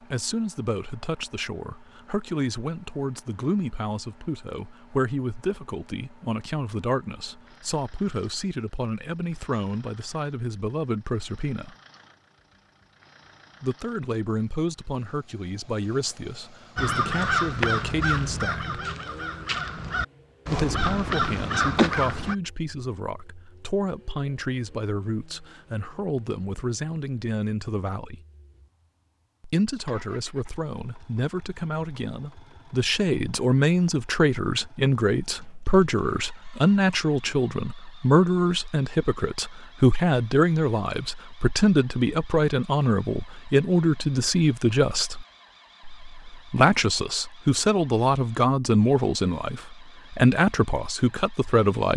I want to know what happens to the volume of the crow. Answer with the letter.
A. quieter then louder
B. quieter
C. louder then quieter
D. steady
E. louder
A.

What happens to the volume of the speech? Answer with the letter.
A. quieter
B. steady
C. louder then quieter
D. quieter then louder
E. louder
E.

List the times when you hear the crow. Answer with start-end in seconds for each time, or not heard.
16.8-22.4.